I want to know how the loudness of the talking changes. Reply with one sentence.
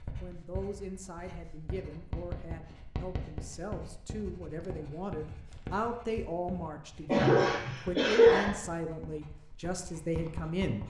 The volume of the talking goes up.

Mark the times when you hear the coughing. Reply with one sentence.
You can hear the coughing from 7.0 to 8.5 s.